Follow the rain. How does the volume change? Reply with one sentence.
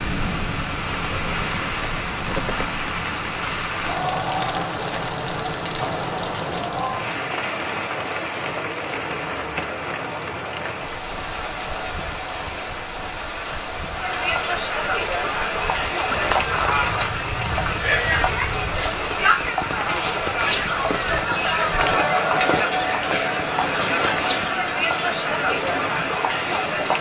The loudness of the rain goes down.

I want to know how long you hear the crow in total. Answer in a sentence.
The crow can't be heard in this clip.